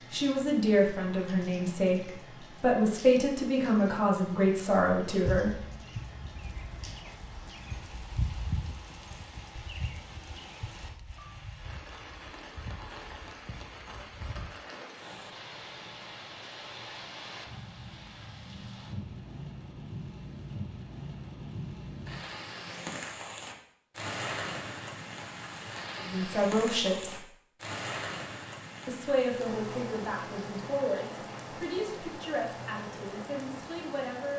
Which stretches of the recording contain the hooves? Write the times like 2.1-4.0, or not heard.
5.2-14.5.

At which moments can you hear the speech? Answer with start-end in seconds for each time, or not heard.
0.1-5.6, 25.9-27.3, 28.9-34.3.